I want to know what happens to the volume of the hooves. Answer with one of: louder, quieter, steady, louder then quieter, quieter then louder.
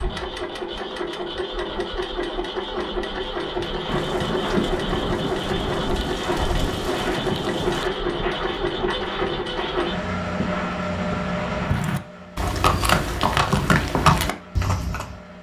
louder.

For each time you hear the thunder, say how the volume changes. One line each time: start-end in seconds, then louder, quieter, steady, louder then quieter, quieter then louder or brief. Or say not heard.
3.9-7.9 steady.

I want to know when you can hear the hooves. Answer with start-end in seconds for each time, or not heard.
3.2-15.2.